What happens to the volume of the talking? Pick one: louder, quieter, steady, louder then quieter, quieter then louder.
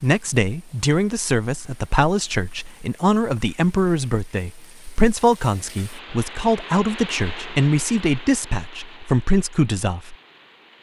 steady.